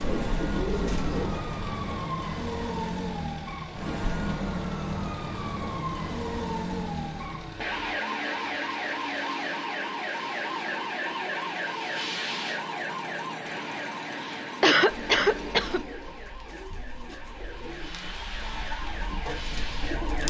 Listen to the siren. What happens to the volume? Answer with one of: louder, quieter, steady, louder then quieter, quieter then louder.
quieter.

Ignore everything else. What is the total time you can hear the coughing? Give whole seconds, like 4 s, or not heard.
2 s.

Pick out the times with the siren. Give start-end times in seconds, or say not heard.
0.0-20.2.